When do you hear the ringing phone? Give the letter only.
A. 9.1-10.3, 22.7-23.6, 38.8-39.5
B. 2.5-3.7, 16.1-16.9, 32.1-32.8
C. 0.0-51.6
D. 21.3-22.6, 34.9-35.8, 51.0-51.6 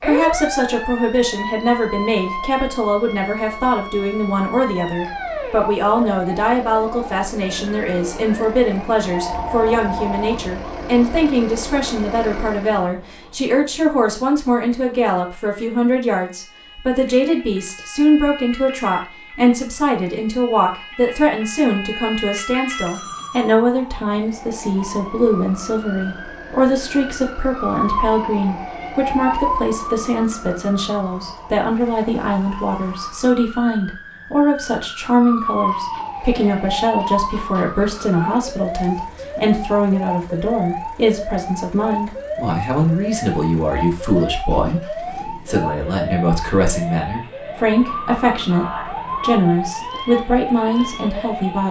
A.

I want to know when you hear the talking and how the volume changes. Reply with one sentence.
You can hear the talking from 0.0 to 51.6 s, at a steady volume.